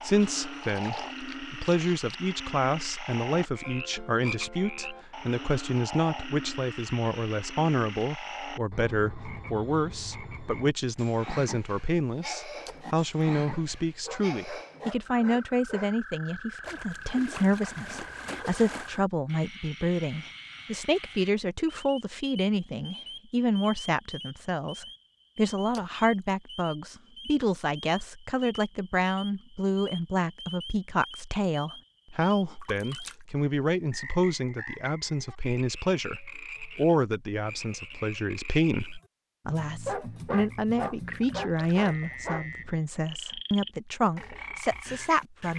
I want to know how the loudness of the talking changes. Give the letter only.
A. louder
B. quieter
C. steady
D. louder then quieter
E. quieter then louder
C.